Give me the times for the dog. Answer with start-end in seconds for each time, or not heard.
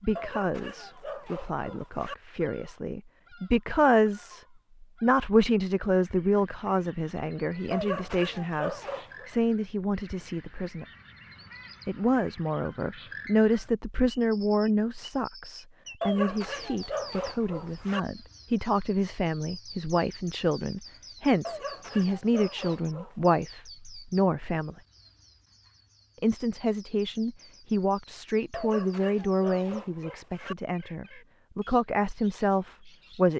0.1-2.1, 7.7-9.3, 16.0-18.0, 21.4-23.1, 28.5-30.6.